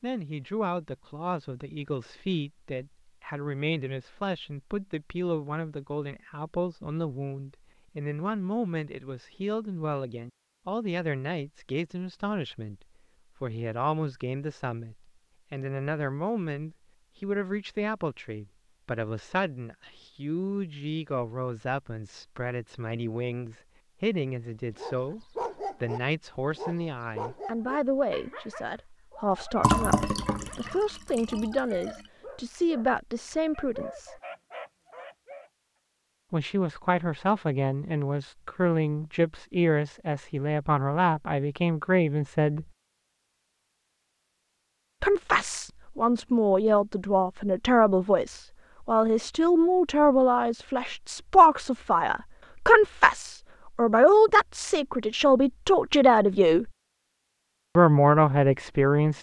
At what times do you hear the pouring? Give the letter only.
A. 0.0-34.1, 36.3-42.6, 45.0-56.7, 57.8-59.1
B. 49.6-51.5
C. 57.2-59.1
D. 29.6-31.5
D.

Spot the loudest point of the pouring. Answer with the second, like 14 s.
30 s.